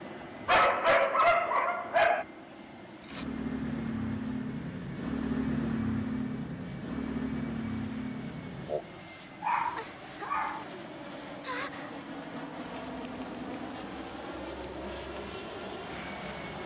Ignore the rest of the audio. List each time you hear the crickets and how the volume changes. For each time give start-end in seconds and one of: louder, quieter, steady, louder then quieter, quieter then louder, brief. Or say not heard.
2.5-16.6 quieter.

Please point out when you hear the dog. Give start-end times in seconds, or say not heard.
0.5-2.2, 9.4-10.7.